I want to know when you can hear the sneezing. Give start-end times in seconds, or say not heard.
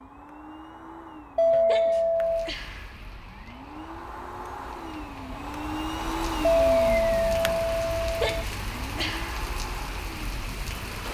1.6-3.0, 8.2-9.4.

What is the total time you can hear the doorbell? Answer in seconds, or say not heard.
3 s.